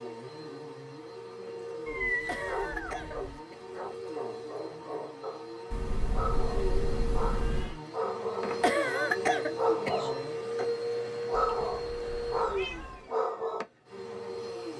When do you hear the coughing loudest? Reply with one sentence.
The volume of the coughing peaks at 9 seconds.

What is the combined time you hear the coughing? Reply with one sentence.
You can hear the coughing for 3 seconds altogether.